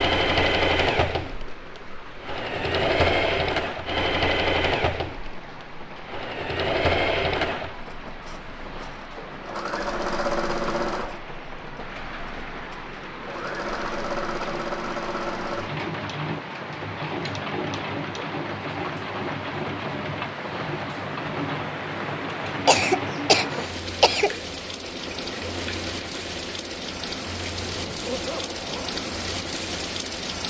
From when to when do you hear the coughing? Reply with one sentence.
You can hear the coughing from 22.6 to 24.4 s.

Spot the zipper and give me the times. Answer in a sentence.
You can hear the zipper from 27.6 to 28.9 s.